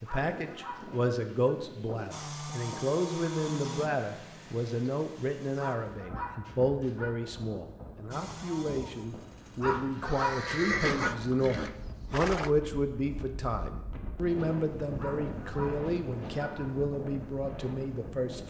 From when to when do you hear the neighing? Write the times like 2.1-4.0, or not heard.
10.0-12.5.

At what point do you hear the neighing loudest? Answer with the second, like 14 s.
11 s.